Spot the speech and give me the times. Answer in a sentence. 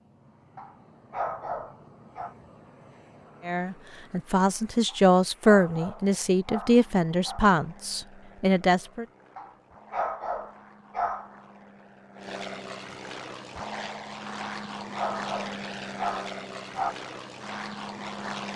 You can hear the speech from 3.5 to 9.1 s.